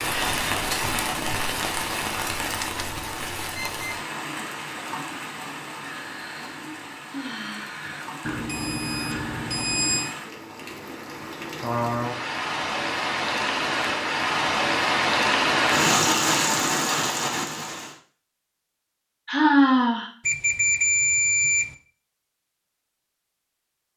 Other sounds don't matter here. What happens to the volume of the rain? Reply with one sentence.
The volume of the rain goes down, then up.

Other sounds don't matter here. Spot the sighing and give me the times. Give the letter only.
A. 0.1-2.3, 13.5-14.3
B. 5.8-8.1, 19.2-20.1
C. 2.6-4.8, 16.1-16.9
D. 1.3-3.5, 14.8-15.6
B.